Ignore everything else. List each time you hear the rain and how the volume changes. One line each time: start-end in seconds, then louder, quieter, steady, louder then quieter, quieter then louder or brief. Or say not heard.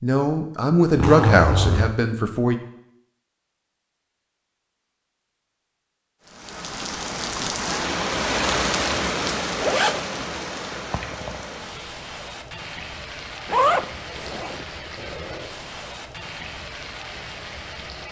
6.2-18.0 quieter.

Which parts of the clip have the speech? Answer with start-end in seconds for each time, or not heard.
0.0-2.6.